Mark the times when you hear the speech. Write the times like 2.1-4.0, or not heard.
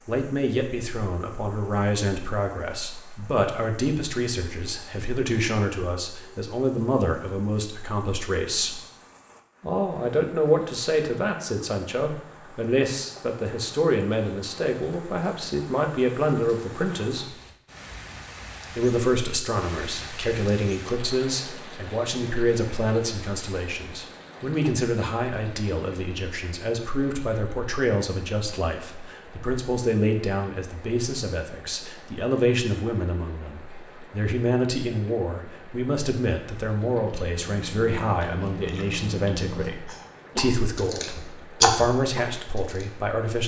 0.1-8.8, 9.6-17.4, 18.7-43.4.